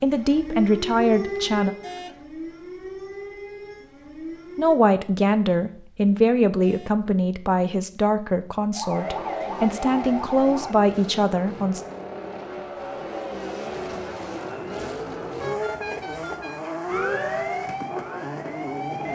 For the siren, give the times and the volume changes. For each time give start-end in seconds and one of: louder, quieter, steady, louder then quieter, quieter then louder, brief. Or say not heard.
0.0-4.8 quieter
8.7-10.8 brief
16.9-19.1 brief.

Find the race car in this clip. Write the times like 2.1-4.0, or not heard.
8.8-19.1.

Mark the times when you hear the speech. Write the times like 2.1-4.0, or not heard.
0.0-1.8, 4.5-11.8.